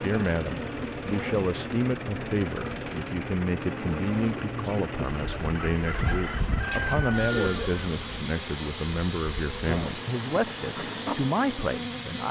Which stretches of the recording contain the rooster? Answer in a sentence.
The rooster can be heard from 5.3 to 7.8 s.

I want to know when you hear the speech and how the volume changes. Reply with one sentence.
You can hear the speech from 0.0 to 12.2 s, at a steady volume.